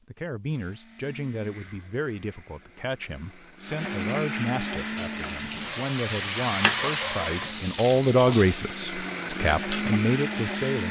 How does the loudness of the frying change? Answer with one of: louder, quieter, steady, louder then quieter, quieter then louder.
louder then quieter.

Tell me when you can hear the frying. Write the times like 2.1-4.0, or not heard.
4.8-10.8.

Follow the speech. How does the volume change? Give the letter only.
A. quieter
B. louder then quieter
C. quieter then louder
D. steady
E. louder
E.